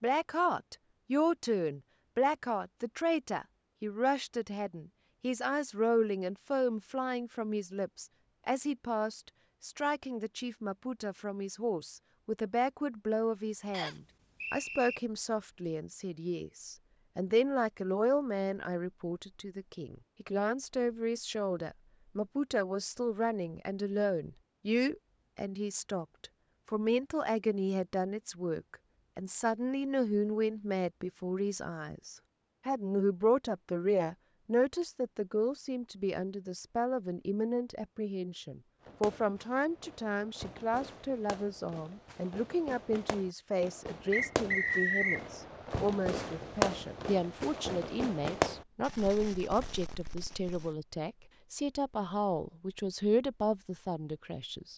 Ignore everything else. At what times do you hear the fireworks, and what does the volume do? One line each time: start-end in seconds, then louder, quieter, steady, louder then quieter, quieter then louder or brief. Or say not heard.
38.8-50.8 louder.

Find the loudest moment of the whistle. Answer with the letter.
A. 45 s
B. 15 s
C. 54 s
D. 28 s
A.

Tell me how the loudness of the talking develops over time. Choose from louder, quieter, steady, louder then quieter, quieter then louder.
steady.